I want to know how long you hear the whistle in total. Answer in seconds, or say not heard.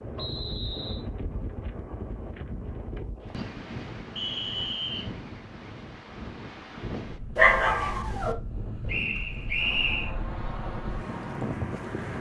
3 s.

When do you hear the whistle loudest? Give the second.
10 s.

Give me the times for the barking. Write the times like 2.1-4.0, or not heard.
7.3-8.3.